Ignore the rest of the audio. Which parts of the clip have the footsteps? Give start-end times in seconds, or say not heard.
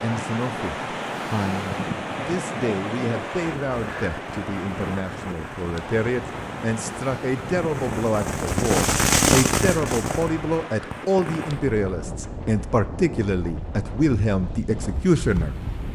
not heard.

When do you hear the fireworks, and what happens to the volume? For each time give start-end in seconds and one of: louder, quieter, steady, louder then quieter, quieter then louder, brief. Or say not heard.
3.2-11.8 louder then quieter.